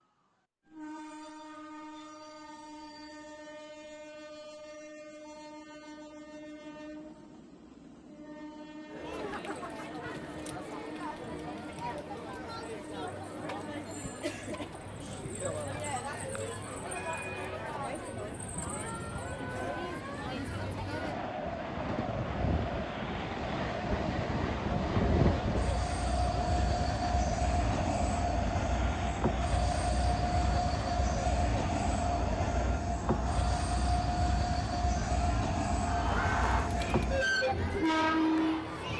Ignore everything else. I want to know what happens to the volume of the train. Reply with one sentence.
The volume of the train goes up.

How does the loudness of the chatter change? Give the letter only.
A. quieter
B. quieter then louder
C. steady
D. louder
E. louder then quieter
C.